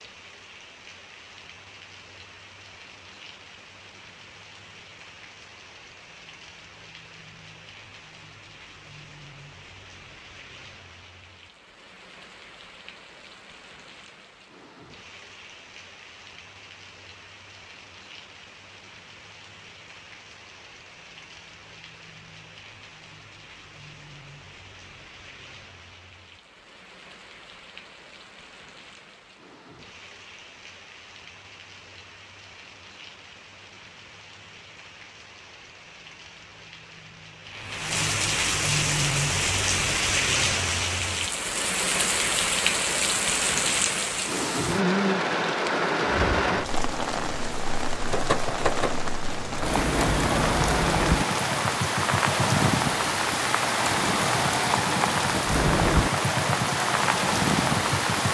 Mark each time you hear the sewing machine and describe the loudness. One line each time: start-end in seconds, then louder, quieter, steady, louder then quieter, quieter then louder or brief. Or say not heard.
48.0-58.2 steady.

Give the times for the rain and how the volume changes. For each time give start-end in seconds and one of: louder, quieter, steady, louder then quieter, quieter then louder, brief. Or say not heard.
0.0-58.2 louder.